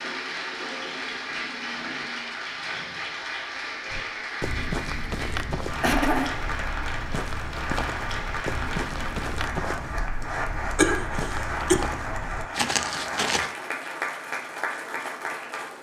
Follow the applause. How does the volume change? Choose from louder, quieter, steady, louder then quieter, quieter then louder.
steady.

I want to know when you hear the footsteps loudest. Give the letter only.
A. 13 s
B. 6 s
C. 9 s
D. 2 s
A.